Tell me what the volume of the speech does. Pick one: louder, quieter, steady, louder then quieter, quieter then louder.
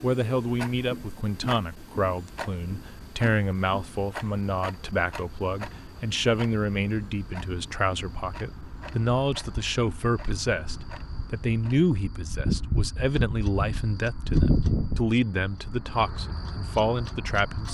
steady.